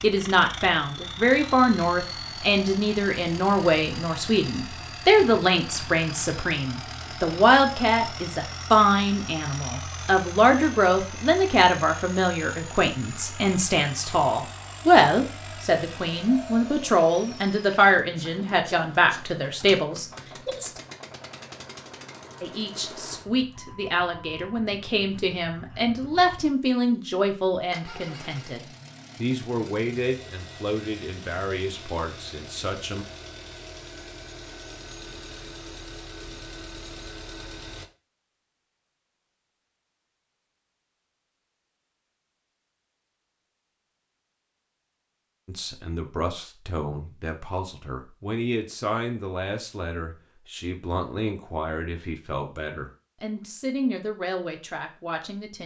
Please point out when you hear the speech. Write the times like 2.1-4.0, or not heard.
0.0-20.7, 22.4-33.0, 45.5-55.6.